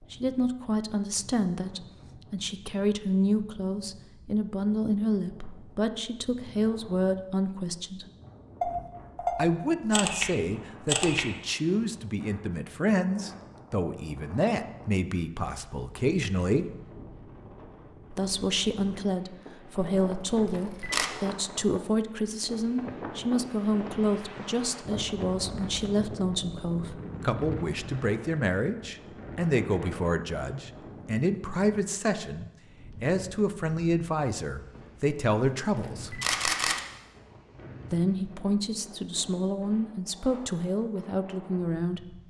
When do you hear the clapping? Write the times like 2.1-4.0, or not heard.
not heard.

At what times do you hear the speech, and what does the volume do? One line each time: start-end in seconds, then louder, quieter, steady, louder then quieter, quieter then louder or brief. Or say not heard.
0.0-8.1 steady
9.3-16.6 steady
18.1-36.1 steady
37.9-42.1 steady.